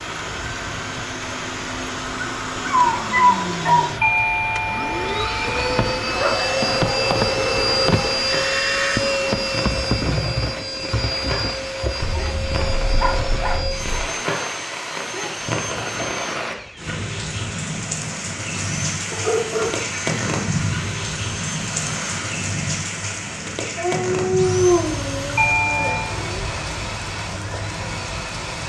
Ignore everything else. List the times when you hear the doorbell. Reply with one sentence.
You can hear the doorbell from 4.0 to 5.8 s and from 25.4 to 26.1 s.